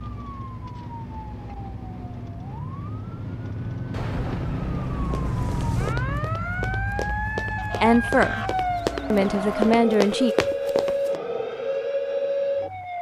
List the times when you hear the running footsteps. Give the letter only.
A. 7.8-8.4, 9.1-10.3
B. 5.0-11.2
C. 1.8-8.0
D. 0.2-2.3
B.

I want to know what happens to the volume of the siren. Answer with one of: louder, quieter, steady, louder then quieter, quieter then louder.
louder.